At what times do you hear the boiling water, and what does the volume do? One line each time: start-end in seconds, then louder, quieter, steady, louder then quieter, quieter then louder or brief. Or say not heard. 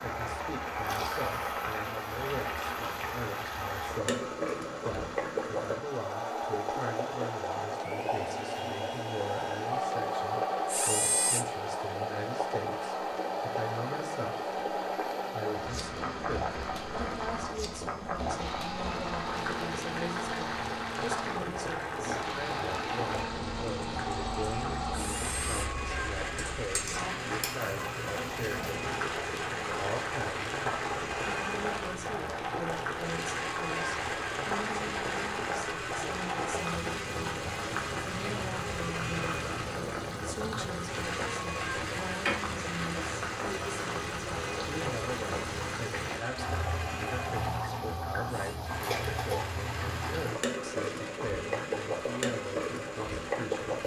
0.0-53.8 steady.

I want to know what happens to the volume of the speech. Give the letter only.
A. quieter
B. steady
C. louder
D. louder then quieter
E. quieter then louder
B.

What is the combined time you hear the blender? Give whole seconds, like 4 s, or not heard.
54 s.